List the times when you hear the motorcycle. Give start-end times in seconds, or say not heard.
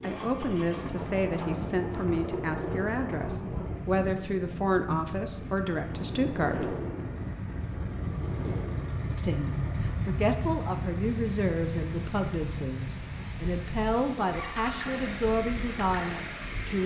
0.0-16.8.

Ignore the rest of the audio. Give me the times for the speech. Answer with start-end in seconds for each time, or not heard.
0.0-6.8, 9.2-16.8.